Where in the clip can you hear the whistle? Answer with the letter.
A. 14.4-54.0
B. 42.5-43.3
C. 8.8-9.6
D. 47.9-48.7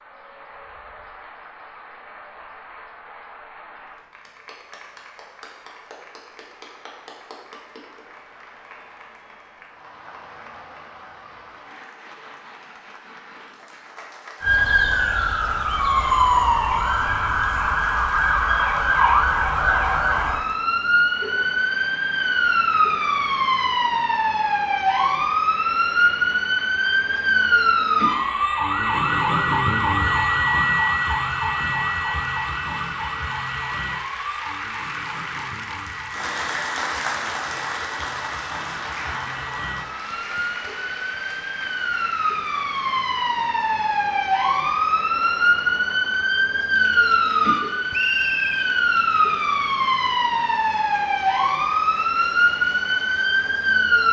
D.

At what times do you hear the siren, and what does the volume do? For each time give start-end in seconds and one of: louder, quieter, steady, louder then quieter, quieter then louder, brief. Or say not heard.
14.4-54.0 quieter then louder.